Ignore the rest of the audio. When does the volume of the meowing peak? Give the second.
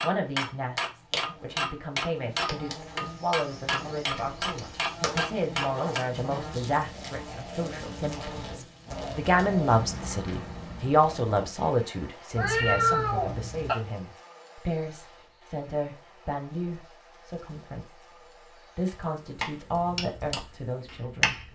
13 s.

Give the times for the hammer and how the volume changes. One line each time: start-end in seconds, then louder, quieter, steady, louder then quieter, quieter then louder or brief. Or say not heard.
0.0-6.4 steady
19.4-21.5 brief.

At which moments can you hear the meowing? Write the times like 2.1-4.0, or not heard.
4.1-4.8, 12.3-13.8.